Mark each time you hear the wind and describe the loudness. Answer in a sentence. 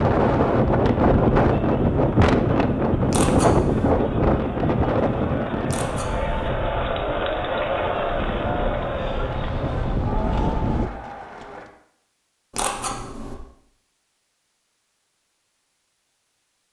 You can hear the wind from 0.0 to 10.9 s, getting quieter then louder.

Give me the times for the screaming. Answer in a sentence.
You can't hear the screaming here.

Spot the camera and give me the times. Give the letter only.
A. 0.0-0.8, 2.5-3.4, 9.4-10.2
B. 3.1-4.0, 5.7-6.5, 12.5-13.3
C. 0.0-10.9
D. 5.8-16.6
B.